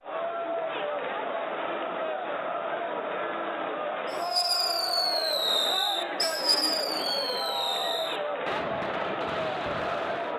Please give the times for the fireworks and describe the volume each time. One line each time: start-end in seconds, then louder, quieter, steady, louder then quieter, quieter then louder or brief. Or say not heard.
4.1-10.3 quieter.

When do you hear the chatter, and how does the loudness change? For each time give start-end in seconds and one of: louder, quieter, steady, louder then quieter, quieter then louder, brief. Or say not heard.
0.0-10.3 steady.